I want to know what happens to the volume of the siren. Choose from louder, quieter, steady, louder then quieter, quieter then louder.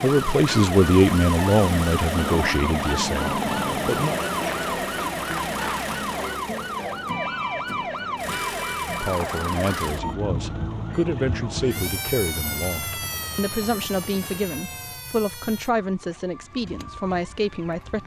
quieter.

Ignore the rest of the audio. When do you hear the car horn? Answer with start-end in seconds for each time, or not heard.
not heard.